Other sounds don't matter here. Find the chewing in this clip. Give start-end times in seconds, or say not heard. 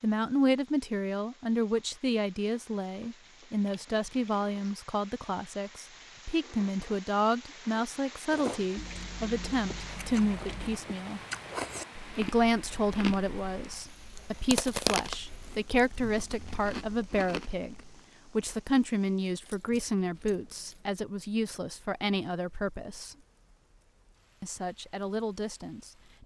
8.2-18.0.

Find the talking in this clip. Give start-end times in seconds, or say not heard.
0.0-11.2, 12.2-23.1, 24.4-26.2.